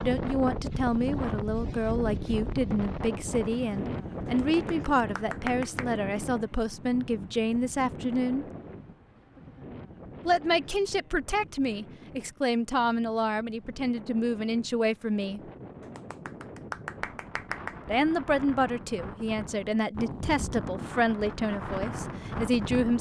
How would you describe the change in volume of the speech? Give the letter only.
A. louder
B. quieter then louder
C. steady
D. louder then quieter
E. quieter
C.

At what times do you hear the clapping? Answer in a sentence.
The clapping can be heard from 4.2 to 5.8 s and from 15.8 to 17.8 s.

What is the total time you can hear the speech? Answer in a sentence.
You can hear the speech for 19 seconds altogether.